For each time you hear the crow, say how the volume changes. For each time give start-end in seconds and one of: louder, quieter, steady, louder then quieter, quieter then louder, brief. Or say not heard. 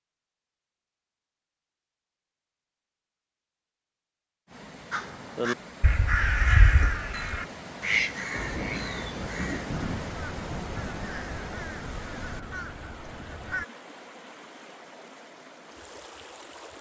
4.9-13.7 quieter.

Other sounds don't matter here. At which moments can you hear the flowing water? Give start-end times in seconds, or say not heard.
4.5-16.7.